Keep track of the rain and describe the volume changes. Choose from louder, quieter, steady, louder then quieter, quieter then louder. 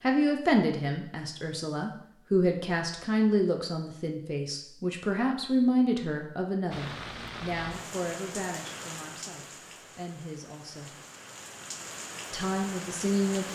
quieter then louder.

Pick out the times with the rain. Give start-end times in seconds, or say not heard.
6.7-13.5.